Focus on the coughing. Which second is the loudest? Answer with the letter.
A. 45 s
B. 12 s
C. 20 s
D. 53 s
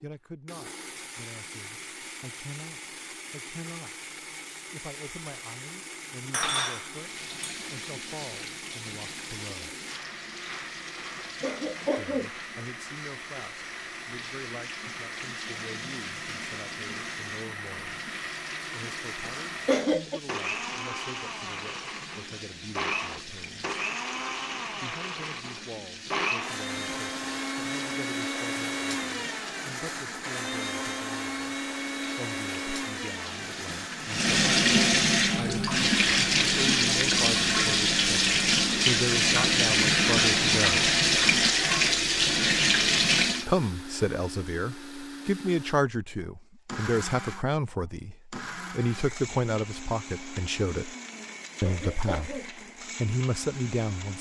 C.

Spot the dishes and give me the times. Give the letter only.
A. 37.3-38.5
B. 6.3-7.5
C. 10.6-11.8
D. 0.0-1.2
B.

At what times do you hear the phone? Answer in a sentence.
You can't hear the phone here.